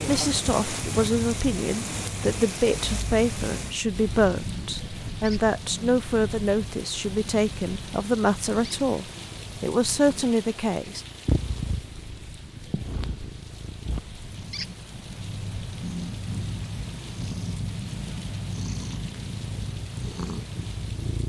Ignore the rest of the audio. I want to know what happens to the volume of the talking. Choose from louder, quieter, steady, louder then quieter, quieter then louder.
steady.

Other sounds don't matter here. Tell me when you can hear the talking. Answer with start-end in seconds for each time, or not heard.
0.0-11.0.